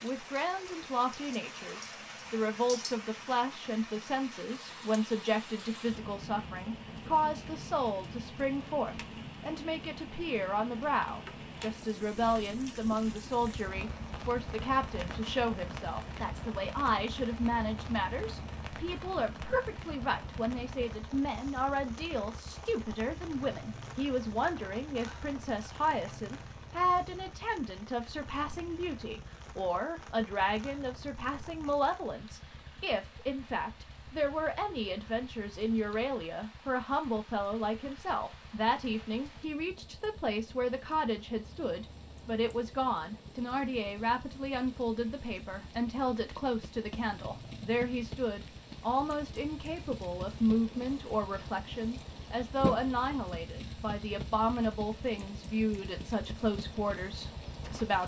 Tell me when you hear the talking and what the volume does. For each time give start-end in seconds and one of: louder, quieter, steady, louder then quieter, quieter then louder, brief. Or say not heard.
0.0-58.0 steady.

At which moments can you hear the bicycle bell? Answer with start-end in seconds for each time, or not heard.
not heard.